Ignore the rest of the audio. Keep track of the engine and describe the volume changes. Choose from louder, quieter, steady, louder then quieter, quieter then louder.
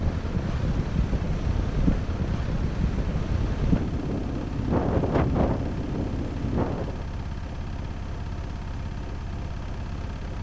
steady.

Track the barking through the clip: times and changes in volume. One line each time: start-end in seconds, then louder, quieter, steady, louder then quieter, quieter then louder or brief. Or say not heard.
not heard.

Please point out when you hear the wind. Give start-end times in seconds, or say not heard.
0.0-7.0.